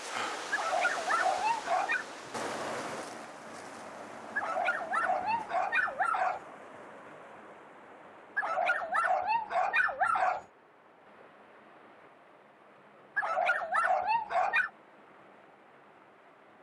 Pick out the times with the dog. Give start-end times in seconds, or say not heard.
0.5-2.0, 4.3-6.4, 8.3-10.4, 13.2-14.7.